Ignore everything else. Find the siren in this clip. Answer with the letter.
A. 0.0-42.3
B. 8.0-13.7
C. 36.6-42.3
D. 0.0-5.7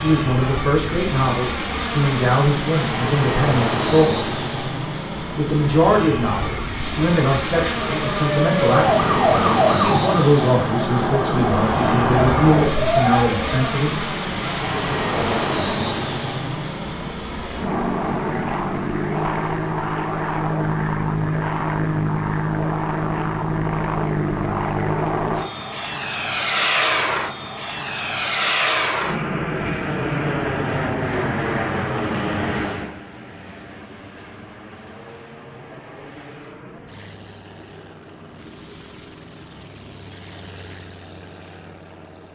B.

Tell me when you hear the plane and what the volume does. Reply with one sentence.
You can hear the plane from 0.0 to 42.3 s, getting quieter.